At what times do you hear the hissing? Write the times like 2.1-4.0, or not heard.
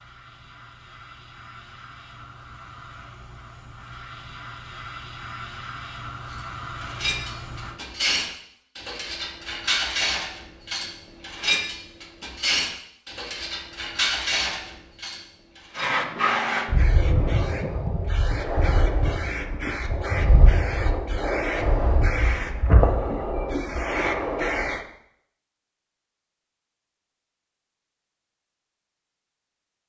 0.0-7.8, 15.7-24.9.